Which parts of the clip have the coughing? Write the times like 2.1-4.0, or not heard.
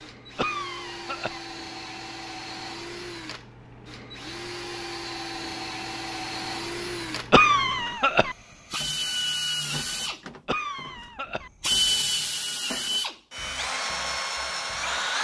0.3-1.4, 7.3-8.3, 10.4-11.5.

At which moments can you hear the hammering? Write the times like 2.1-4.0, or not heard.
not heard.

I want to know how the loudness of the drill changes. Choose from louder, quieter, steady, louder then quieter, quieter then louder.
louder.